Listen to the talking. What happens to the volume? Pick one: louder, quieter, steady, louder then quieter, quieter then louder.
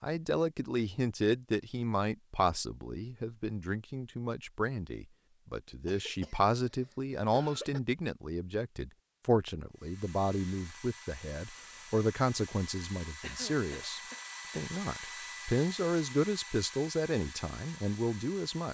steady.